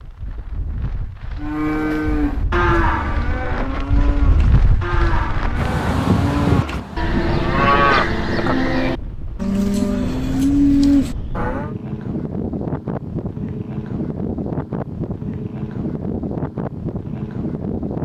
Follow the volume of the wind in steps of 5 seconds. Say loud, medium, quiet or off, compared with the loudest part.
medium, loud, loud, loud.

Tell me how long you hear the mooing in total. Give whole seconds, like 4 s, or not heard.
10 s.